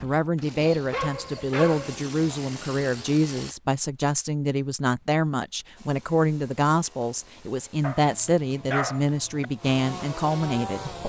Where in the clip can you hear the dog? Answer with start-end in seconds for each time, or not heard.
0.6-2.0, 7.8-9.4.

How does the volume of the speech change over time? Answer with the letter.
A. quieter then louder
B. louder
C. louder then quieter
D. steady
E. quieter
D.